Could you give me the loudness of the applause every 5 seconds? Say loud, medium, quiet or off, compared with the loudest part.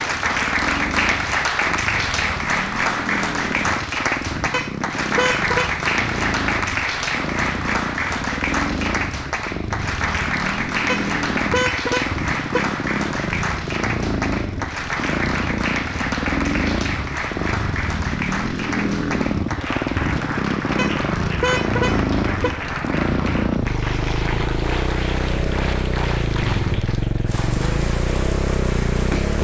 loud, loud, loud, medium, medium, medium.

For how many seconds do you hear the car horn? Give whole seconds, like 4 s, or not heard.
5 s.